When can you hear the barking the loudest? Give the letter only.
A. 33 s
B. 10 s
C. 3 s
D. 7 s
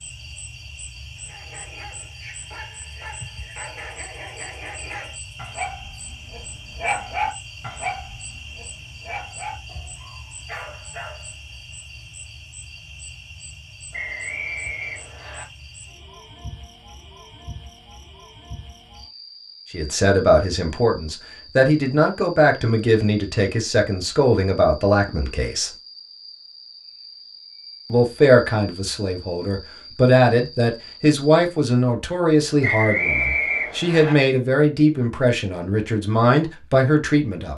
D.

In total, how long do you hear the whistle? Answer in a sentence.
You can hear the whistle for 3 seconds altogether.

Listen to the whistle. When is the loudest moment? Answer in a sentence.
The loudest moment of the whistle is at 33 seconds.